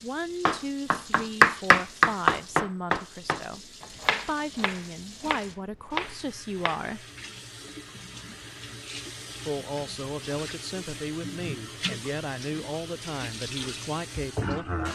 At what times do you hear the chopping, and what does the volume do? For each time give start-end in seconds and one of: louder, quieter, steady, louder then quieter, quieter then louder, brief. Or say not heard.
0.5-6.8 quieter then louder.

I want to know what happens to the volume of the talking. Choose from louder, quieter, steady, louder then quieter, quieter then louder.
steady.